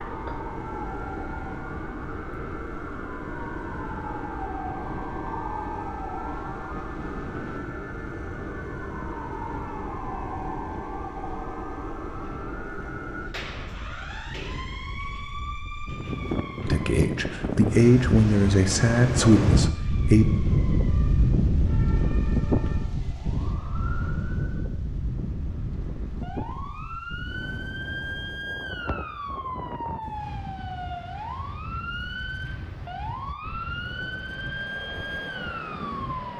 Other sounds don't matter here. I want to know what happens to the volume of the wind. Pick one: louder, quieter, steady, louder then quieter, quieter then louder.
louder then quieter.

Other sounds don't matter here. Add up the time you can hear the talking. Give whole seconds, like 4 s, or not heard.
4 s.